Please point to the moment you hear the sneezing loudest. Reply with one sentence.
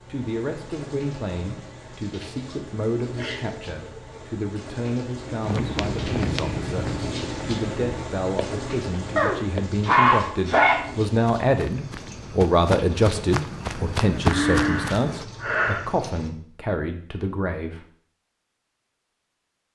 The loudest moment of the sneezing is at 10 seconds.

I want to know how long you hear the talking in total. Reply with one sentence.
The talking can be heard for 18 seconds in total.